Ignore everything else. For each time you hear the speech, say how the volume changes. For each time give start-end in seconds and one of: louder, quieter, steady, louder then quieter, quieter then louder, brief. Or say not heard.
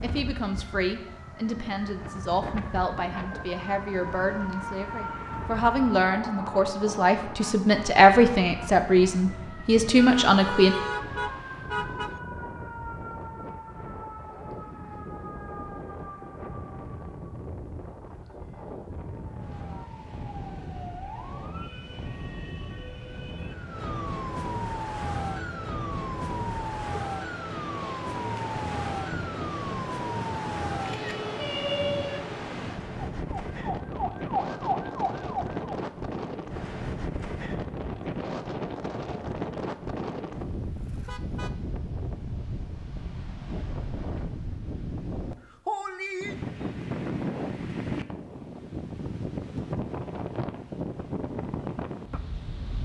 0.0-10.8 louder.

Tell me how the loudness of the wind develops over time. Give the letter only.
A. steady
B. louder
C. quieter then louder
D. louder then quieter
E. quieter
B.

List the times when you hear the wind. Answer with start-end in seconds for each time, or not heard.
0.0-52.7.